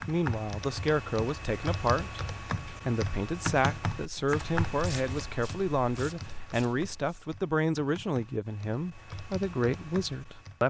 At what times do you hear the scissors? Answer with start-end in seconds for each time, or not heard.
not heard.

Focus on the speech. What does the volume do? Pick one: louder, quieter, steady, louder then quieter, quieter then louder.
steady.